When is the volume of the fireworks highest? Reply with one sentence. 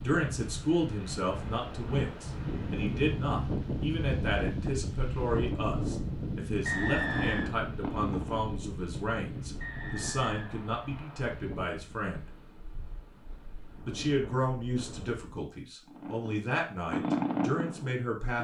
The loudest moment of the fireworks is at 17 seconds.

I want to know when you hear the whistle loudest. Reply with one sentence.
The volume of the whistle peaks at 7 seconds.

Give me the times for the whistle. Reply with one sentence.
You can hear the whistle from 6.7 to 7.5 s and from 9.6 to 11.3 s.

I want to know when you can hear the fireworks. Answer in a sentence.
You can hear the fireworks from 6.7 to 8.5 s and from 15.8 to 18.3 s.